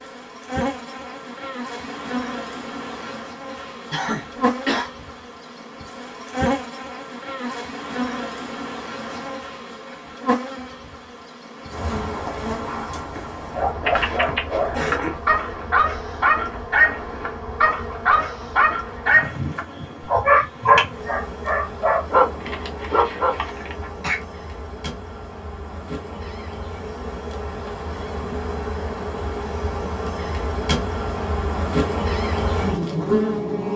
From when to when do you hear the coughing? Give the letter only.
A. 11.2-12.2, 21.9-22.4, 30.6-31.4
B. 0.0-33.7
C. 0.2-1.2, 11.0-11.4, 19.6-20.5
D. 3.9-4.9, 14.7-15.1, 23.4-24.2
D.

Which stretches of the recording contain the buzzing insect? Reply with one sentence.
The buzzing insect can be heard from 0.0 to 33.7 s.